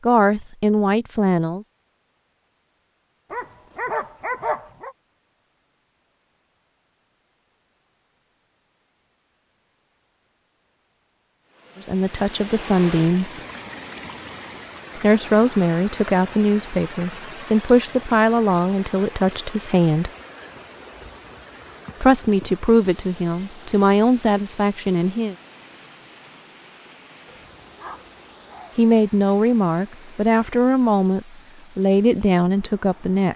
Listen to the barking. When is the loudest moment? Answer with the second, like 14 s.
4 s.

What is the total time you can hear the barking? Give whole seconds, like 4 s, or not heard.
3 s.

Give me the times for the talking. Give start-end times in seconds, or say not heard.
0.1-1.6, 11.8-13.4, 14.9-20.1, 22.0-25.4, 28.8-33.3.